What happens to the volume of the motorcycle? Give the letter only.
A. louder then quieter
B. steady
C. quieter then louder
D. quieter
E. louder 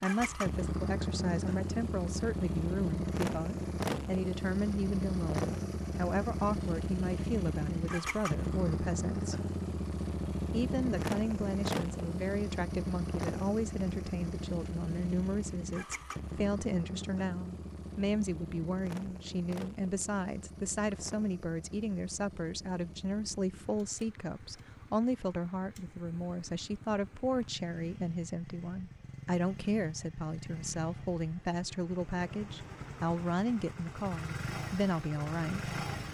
C.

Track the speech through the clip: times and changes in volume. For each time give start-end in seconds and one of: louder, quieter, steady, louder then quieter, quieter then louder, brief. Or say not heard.
0.0-9.4 steady
10.5-35.7 steady.